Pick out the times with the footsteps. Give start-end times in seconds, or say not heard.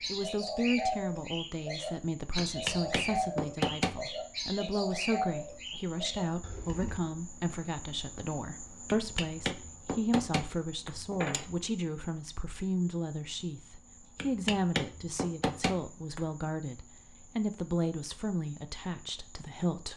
not heard.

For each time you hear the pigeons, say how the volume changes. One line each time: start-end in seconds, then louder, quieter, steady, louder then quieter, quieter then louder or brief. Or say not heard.
0.0-7.0 quieter.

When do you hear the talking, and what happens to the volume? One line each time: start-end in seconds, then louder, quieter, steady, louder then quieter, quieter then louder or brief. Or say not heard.
0.1-19.9 steady.